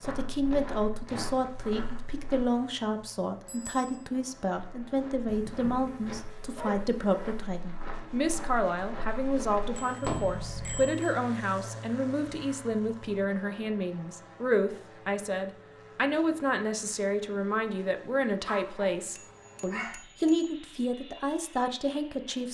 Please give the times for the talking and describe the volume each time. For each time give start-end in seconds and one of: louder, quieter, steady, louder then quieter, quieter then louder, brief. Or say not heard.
0.0-22.4 steady.